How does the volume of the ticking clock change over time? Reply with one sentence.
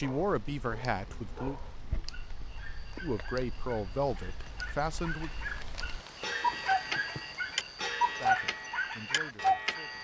The volume of the ticking clock goes up.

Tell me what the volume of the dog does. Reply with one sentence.
The loudness of the dog goes up.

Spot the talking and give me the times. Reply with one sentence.
You can hear the talking from 0.0 to 1.6 s, from 3.0 to 5.3 s and from 8.2 to 9.9 s.